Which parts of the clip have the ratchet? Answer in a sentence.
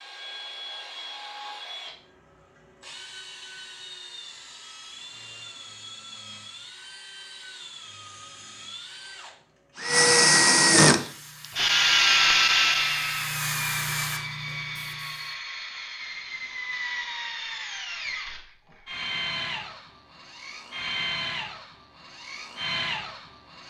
You can't hear the ratchet here.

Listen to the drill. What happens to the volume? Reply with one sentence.
The volume of the drill goes up, then down.